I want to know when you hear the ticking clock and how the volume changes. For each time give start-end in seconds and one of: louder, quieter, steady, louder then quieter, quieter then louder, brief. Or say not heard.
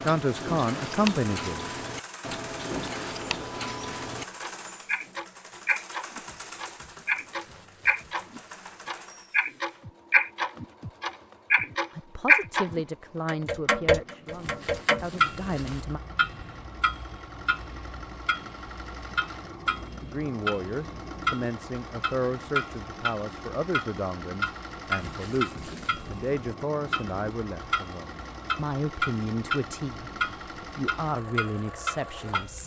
0.0-32.6 louder then quieter.